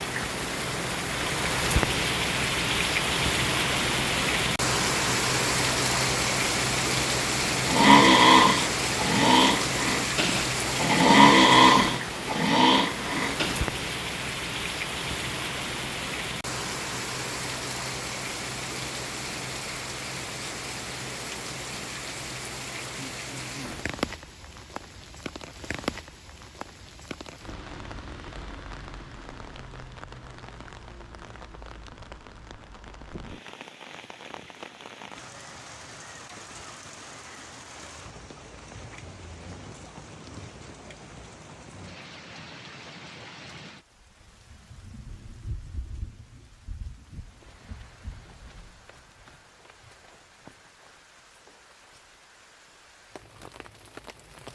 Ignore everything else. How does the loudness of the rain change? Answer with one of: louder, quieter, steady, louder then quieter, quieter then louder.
quieter.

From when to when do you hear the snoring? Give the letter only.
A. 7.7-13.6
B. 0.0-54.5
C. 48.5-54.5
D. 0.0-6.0
A.